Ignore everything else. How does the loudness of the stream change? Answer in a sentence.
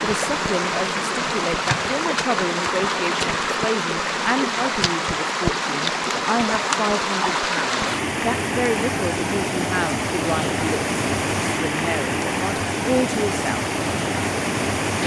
The loudness of the stream stays about the same.